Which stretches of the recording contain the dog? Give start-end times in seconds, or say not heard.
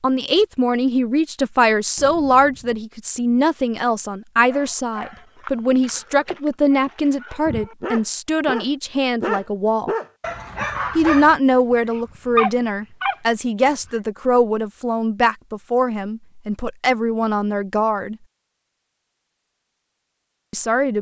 4.5-13.9.